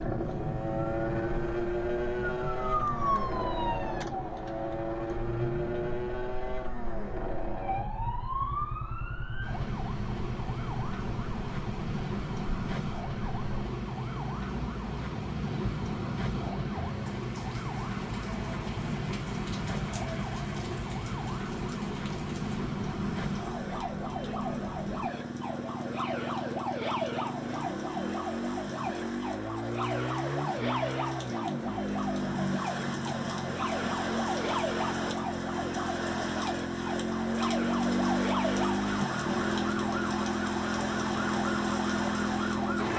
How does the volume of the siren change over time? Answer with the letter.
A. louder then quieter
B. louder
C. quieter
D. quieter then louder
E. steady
E.